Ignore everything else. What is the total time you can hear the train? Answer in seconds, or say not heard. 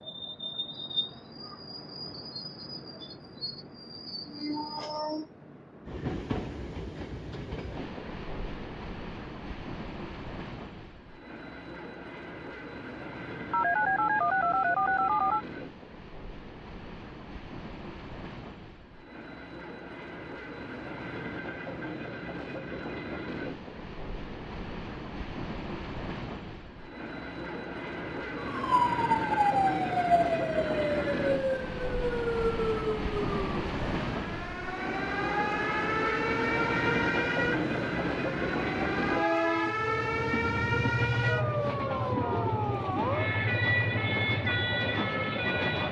46 s.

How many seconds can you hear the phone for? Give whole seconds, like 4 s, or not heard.
2 s.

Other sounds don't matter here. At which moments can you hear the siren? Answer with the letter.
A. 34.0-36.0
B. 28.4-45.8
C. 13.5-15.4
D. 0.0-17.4
B.